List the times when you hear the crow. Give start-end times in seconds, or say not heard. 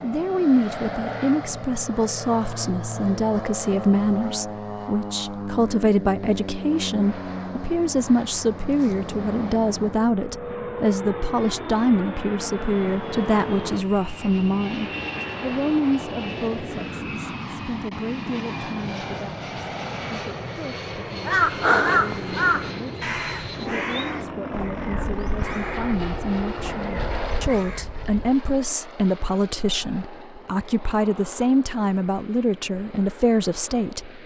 21.2-28.3.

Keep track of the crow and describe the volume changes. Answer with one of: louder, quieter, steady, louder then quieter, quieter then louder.
quieter.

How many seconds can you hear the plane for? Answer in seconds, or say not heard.
34 s.